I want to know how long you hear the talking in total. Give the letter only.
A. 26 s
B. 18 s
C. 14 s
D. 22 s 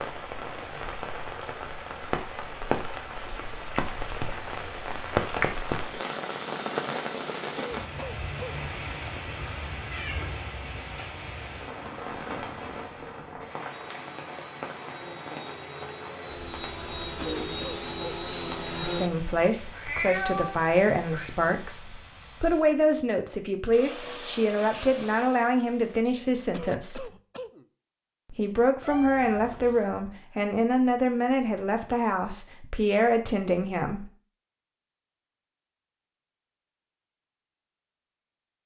C.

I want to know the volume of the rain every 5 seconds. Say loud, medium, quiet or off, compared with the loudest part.
loud, loud, medium, medium, quiet, off, off, off.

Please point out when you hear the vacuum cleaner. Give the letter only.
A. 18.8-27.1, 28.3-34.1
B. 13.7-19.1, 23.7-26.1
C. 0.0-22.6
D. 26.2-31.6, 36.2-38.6
B.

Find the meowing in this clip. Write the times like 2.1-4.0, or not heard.
9.9-10.3, 19.7-21.3, 28.8-29.9.